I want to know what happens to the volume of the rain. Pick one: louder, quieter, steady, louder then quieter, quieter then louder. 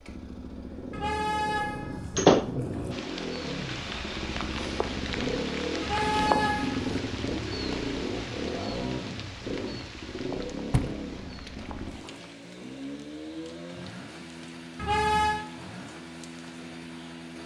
quieter.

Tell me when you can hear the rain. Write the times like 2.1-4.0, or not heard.
2.9-17.4.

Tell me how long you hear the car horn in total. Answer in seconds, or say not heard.
4 s.